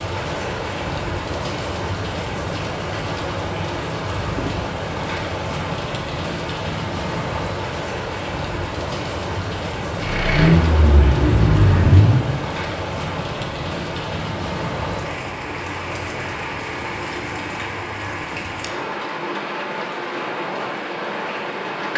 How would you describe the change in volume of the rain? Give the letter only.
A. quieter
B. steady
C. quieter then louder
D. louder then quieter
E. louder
B.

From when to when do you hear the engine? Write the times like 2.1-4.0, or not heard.
9.9-12.3.